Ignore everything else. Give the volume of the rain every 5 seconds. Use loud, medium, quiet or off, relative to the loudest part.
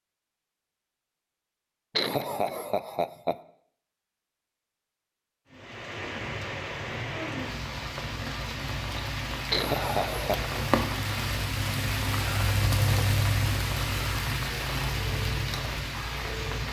off, medium, loud, loud.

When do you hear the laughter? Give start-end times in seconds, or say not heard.
1.9-3.4, 9.5-10.5.